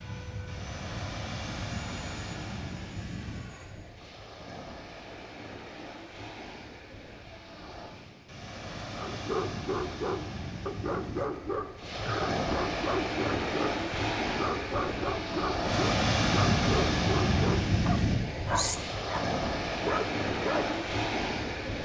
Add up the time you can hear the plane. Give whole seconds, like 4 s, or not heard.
4 s.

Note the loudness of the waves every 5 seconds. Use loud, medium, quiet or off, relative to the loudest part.
quiet, quiet, medium, loud, loud.